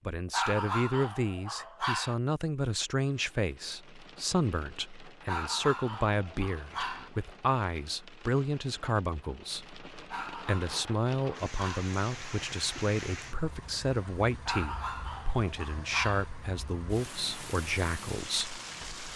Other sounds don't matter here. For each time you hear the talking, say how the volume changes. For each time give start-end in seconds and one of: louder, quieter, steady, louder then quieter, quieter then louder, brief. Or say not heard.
0.1-19.1 steady.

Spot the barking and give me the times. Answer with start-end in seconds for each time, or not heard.
0.3-2.1, 5.2-7.1, 10.1-11.9, 14.4-16.3.